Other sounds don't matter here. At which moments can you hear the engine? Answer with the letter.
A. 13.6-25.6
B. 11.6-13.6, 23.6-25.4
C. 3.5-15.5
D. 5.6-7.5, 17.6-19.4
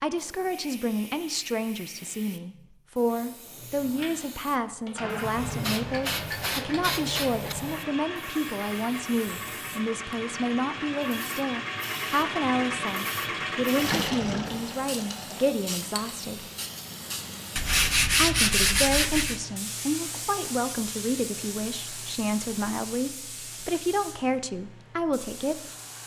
C.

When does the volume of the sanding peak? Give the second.
18 s.